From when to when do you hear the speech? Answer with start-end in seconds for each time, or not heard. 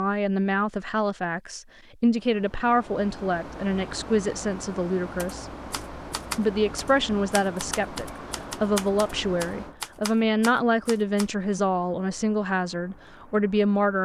0.0-5.5, 6.3-14.0.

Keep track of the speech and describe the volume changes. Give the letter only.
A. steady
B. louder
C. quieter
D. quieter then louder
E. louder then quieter
A.